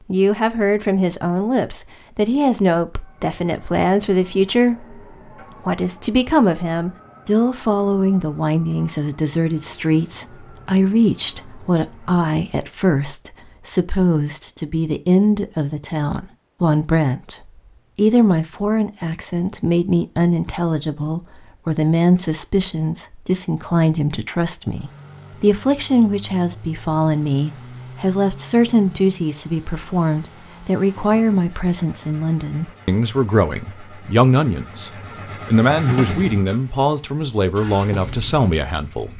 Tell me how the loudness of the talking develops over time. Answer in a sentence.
The volume of the talking stays about the same.